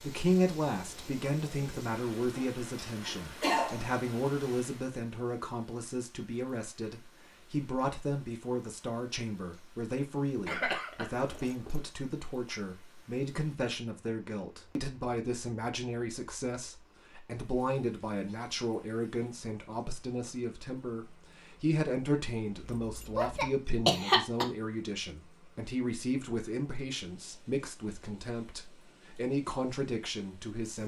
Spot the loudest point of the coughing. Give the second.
24 s.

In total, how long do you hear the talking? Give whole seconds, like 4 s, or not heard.
31 s.